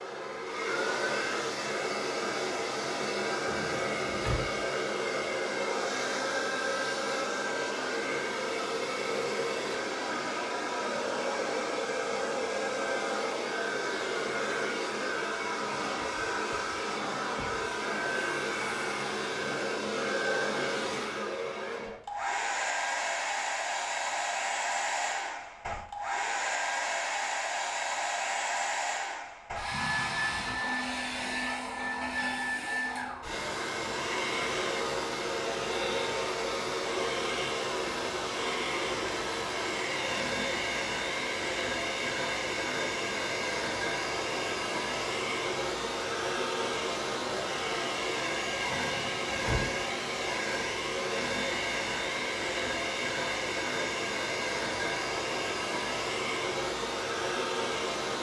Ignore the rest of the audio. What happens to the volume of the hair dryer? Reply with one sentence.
The loudness of the hair dryer stays about the same.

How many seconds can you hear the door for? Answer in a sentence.
You can hear the door for 3 seconds altogether.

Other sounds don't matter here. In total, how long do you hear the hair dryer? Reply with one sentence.
The hair dryer can be heard for 58 seconds in total.